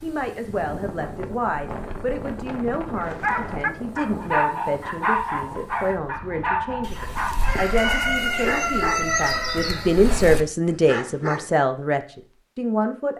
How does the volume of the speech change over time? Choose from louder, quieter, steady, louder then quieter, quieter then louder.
louder.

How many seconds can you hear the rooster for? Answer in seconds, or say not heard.
4 s.